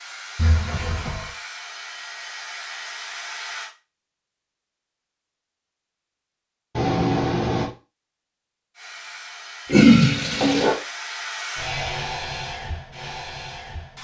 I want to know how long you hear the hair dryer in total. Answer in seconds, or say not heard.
9 s.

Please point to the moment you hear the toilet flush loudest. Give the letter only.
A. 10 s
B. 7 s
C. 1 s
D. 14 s
A.